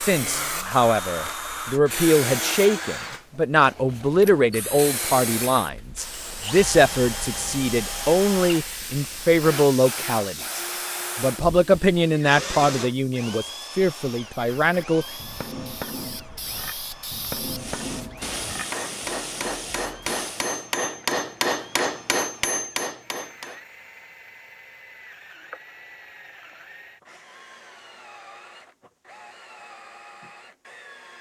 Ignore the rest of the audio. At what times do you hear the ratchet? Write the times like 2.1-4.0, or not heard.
not heard.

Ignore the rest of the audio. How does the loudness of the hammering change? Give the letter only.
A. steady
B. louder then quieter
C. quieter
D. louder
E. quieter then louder
D.